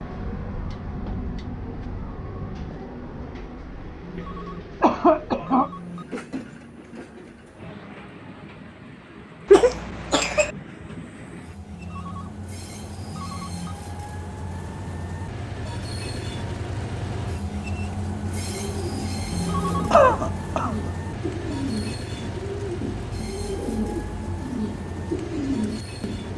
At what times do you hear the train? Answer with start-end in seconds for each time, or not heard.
0.0-26.3.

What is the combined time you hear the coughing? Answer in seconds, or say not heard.
3 s.